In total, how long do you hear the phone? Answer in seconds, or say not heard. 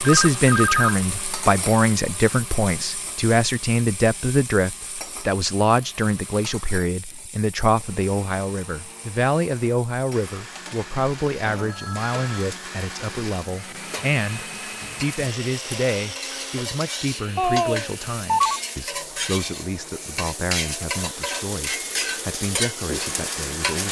3 s.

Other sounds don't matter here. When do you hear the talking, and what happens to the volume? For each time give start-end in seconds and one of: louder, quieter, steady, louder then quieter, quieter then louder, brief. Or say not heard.
0.0-23.8 quieter.